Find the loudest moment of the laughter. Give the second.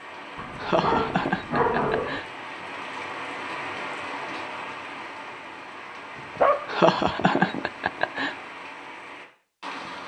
7 s.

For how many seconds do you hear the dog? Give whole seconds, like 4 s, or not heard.
4 s.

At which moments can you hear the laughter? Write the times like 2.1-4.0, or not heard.
0.6-2.2, 6.7-8.3.